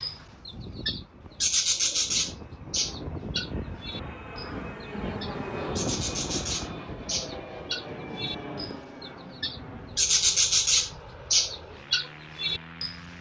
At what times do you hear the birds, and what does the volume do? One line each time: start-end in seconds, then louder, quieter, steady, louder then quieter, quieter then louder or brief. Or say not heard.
0.0-13.1 quieter then louder.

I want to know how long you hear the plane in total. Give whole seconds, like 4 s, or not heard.
13 s.